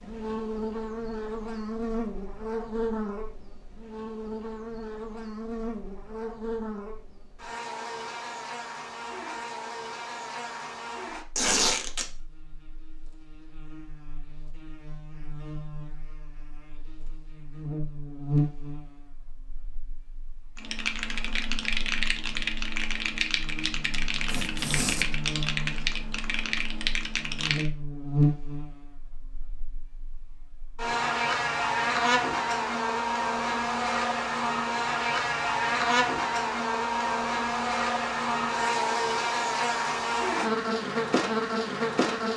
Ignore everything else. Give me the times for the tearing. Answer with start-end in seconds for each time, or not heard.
11.3-12.1, 24.2-25.1.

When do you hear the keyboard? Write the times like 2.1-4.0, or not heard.
20.6-27.7.